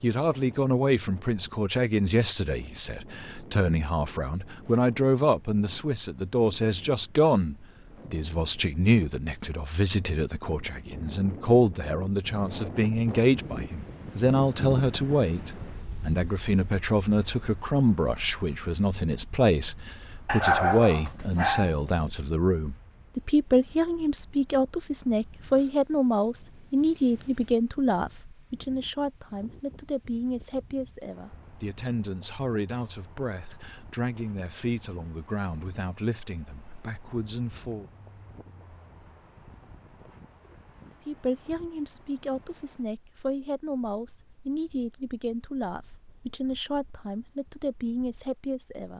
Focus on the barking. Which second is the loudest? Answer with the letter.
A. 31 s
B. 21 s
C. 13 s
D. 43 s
B.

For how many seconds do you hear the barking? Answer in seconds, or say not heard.
2 s.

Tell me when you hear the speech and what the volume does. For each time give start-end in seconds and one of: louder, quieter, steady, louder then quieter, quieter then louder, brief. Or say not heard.
0.0-37.9 quieter
41.0-48.9 steady.